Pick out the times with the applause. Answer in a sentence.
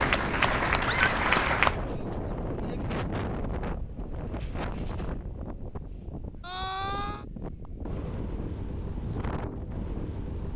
The applause can be heard from 0.0 to 1.8 s.